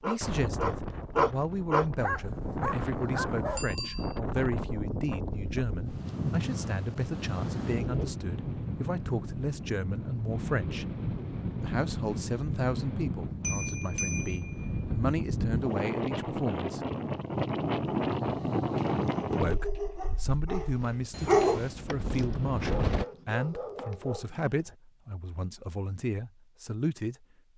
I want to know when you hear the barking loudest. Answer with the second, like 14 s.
21 s.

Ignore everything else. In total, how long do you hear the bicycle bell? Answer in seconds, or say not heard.
3 s.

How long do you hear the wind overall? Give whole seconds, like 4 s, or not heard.
23 s.